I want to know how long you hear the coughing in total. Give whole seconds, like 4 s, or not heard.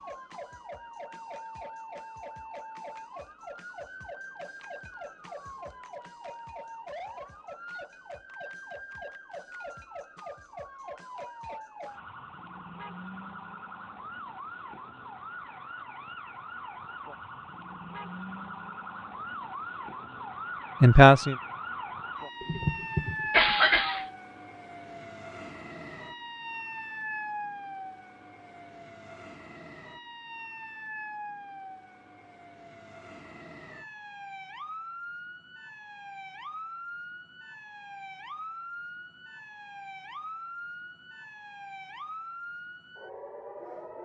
2 s.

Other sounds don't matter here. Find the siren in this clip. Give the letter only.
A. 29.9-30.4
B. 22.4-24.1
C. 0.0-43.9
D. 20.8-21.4
C.